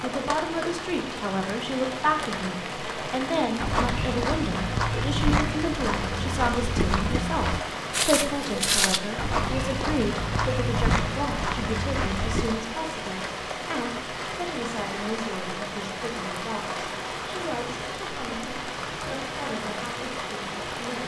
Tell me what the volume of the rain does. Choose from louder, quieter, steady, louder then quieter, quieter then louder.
steady.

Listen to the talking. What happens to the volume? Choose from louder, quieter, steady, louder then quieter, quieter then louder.
quieter.